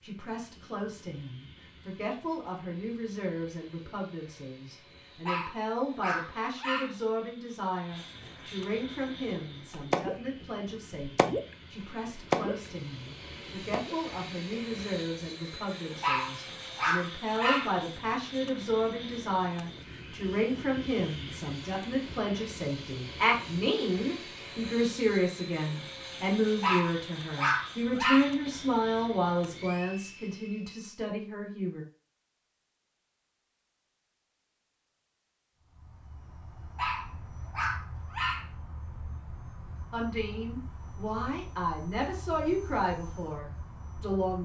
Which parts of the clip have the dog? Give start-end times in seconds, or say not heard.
5.2-7.0, 16.0-17.7, 26.6-28.3, 36.8-38.5.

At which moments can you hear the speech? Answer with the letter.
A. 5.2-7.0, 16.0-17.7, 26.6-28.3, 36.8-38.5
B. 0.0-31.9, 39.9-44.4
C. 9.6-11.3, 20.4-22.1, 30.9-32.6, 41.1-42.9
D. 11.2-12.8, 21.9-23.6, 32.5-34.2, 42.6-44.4
B.